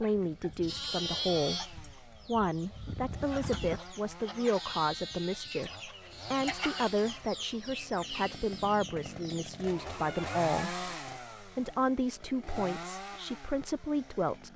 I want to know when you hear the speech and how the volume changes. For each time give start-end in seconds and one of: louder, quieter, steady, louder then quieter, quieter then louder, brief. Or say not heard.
0.0-14.5 steady.